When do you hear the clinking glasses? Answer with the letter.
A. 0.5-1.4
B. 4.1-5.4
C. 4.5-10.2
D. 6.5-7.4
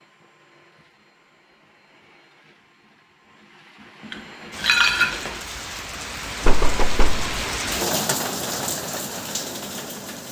B.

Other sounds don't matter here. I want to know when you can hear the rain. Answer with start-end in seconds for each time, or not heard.
4.5-10.2.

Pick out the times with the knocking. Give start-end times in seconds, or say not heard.
6.5-7.4.